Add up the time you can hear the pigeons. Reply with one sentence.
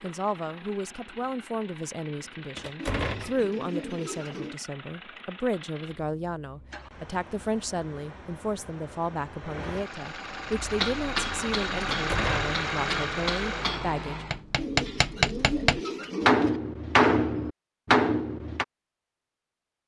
You can hear the pigeons for 4 seconds altogether.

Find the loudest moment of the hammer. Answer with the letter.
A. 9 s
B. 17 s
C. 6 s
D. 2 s
B.